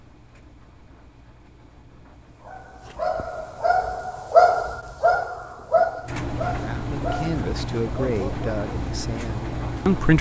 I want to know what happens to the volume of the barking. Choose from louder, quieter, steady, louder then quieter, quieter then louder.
louder then quieter.